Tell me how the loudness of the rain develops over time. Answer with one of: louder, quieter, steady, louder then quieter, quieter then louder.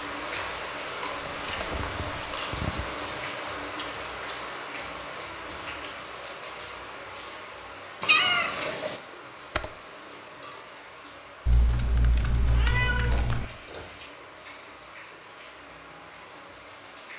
quieter.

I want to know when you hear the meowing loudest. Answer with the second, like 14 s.
8 s.